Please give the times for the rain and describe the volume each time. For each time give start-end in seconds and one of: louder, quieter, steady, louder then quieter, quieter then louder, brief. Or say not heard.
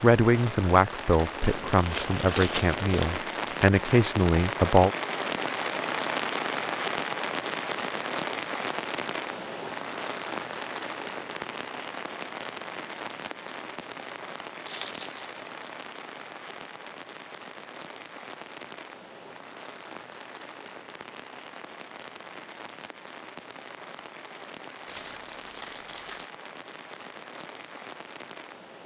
0.0-28.8 quieter.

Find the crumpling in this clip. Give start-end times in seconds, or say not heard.
1.4-3.2, 14.7-15.5, 24.9-26.3.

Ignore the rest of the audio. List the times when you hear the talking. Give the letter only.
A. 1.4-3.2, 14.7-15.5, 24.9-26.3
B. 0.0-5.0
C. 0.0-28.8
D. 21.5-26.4
B.